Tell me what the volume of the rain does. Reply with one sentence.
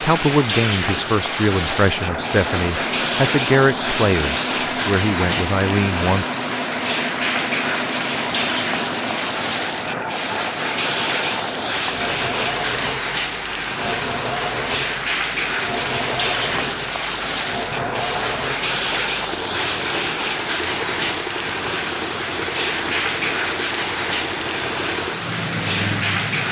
The volume of the rain stays about the same.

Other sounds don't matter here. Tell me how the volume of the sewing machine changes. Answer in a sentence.
The volume of the sewing machine stays about the same.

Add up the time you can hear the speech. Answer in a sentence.
You can hear the speech for 6 seconds altogether.